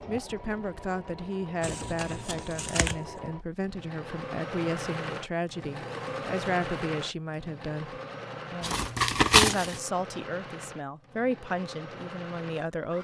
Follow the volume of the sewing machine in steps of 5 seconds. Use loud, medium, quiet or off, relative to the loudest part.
loud, loud, medium.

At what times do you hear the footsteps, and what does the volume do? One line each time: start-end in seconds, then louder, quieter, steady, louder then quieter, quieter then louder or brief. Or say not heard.
not heard.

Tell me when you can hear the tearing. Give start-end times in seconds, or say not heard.
1.6-3.0, 8.6-9.8.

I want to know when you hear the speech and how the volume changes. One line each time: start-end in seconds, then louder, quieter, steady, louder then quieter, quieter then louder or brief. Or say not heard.
0.0-12.9 steady.